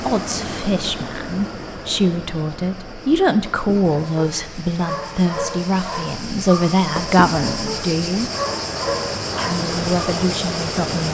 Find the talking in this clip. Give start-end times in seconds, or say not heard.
0.1-8.3, 9.3-11.0.